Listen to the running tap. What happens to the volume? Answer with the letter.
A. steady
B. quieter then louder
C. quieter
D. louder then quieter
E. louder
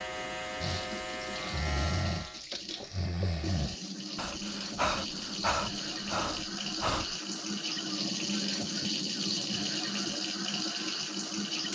E.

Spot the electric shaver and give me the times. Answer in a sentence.
You can hear the electric shaver from 0.0 to 2.5 s.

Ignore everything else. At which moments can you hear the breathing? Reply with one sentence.
You can hear the breathing from 0.6 to 7.2 s.